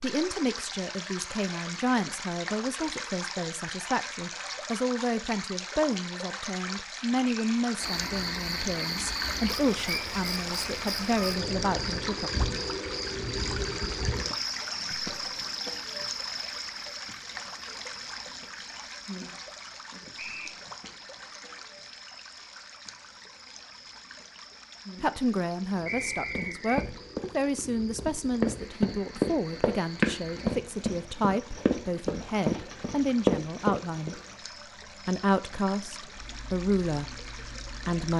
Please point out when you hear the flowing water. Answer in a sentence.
You can hear the flowing water from 0.0 to 38.1 s.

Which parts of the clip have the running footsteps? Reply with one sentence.
The running footsteps can be heard from 26.4 to 34.1 s.